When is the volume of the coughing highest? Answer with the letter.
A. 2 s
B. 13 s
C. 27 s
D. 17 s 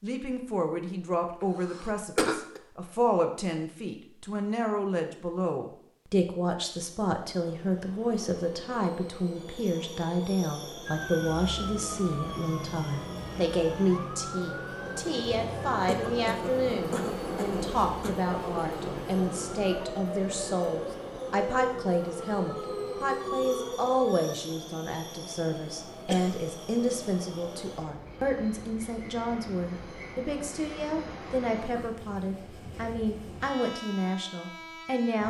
A.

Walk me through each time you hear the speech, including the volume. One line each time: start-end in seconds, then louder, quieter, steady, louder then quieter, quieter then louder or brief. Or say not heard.
0.0-35.2 steady.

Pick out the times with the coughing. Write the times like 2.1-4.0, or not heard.
1.4-2.6, 15.8-18.1, 26.1-26.5.